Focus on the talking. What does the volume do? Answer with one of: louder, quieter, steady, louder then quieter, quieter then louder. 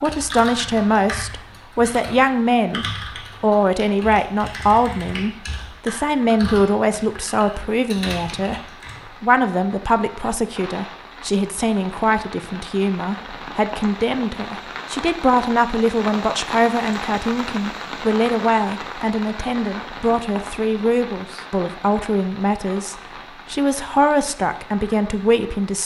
steady.